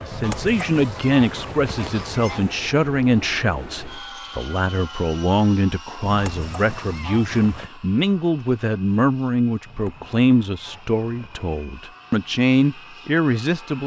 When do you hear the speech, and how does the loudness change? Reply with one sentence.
You can hear the speech from 0.0 to 13.8 s, at a steady volume.